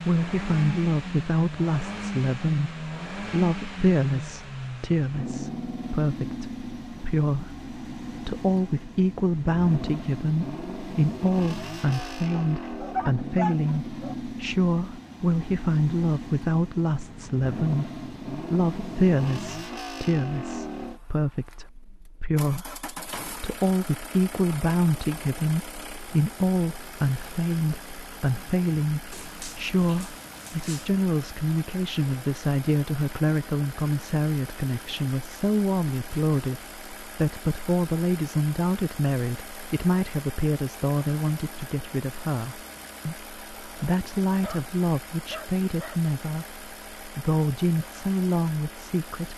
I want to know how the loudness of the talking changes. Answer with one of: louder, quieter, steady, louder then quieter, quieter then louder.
steady.